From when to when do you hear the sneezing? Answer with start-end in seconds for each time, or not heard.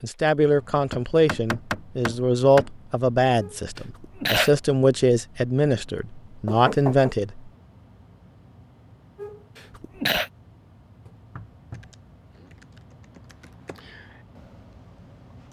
3.4-4.5, 9.2-10.3.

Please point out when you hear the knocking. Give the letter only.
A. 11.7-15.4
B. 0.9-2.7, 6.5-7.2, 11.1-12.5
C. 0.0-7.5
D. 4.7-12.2
B.